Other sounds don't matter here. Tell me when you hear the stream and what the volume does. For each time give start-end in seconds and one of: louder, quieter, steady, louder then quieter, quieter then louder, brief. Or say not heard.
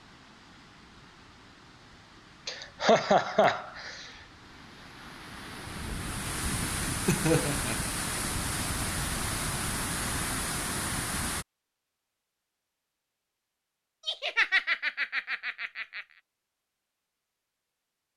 0.0-11.4 louder.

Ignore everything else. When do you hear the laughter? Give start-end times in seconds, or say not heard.
2.5-4.1, 7.0-8.0, 14.1-16.1.